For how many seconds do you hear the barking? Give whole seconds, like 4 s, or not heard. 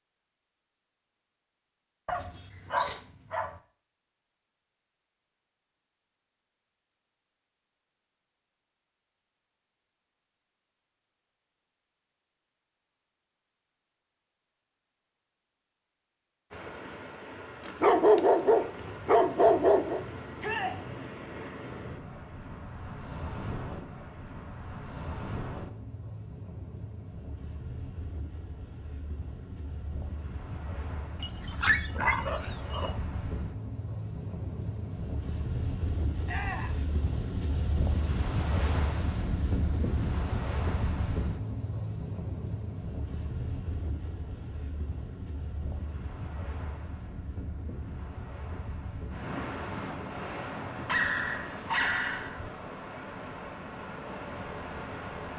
7 s.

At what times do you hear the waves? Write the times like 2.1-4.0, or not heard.
16.5-55.3.